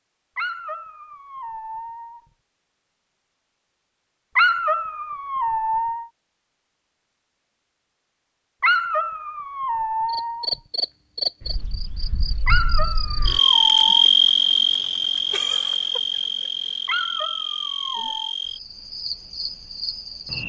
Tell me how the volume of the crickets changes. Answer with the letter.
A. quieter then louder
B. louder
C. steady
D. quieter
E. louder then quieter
E.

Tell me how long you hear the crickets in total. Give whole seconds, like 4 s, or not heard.
10 s.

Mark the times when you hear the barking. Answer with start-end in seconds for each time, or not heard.
0.3-2.2, 4.3-6.0, 8.6-10.4, 12.4-14.1, 16.9-18.4.